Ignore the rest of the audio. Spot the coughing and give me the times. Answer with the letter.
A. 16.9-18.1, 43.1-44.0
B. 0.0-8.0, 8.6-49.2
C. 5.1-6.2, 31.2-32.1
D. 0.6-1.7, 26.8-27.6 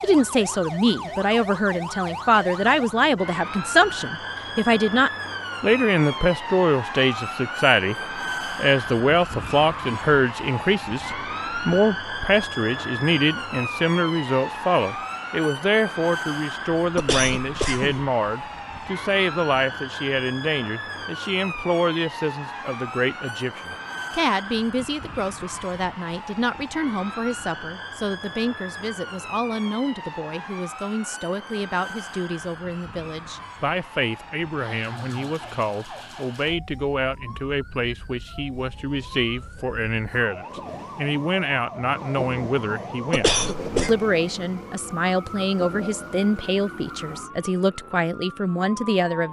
A.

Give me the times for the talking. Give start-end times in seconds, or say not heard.
0.0-8.0, 8.6-49.2.